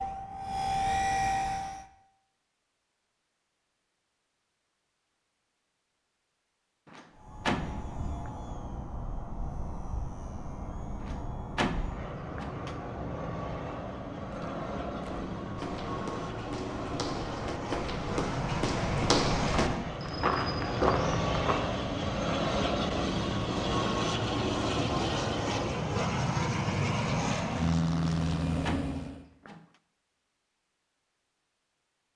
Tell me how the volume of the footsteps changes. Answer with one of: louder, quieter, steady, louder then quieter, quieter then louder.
louder.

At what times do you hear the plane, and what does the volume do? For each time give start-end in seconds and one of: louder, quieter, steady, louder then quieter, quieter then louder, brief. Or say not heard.
0.0-1.9 brief
7.2-29.2 louder.